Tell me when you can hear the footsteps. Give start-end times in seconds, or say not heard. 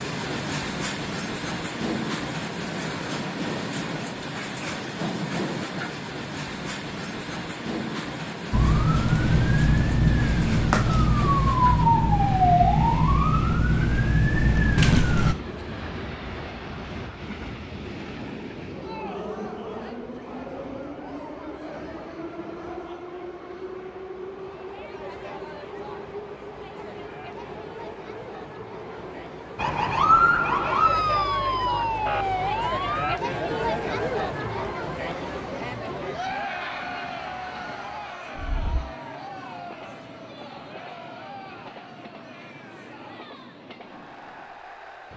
not heard.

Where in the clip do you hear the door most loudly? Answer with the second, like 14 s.
15 s.